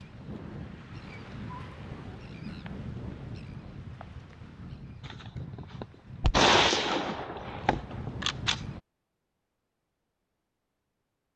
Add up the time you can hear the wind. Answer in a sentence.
You can hear the wind for 9 seconds altogether.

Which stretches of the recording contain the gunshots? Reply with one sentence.
The gunshots can be heard from 5.0 to 8.6 s.